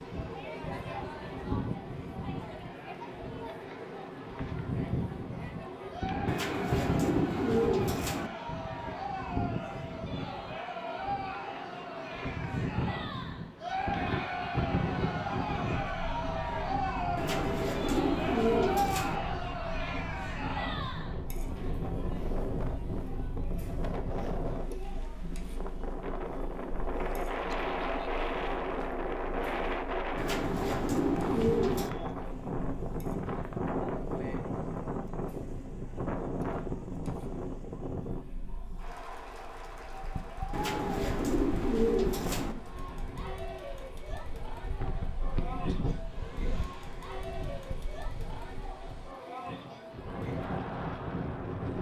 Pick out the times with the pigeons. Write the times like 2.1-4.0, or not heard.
6.2-8.3, 17.1-19.2, 30.1-31.9, 40.5-42.5.